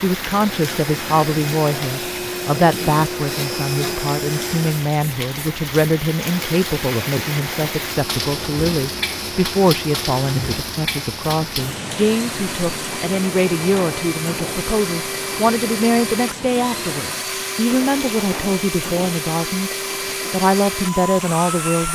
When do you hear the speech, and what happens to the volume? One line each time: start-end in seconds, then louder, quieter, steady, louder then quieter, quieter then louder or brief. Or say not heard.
0.0-19.7 steady
20.3-21.9 brief.